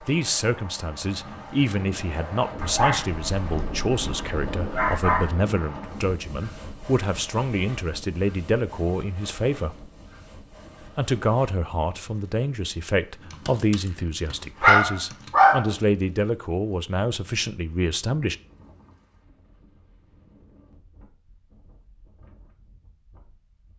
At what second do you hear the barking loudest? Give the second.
15 s.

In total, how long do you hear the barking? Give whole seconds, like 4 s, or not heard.
5 s.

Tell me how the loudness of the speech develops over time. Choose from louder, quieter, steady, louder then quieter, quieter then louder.
steady.